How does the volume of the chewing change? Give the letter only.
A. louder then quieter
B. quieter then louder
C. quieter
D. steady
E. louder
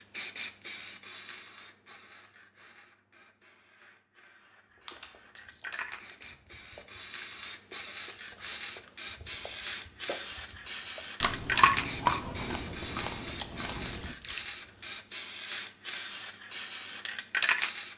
A.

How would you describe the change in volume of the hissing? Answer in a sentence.
The loudness of the hissing goes up.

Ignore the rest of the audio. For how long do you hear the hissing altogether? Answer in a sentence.
The hissing can be heard for 18 seconds in total.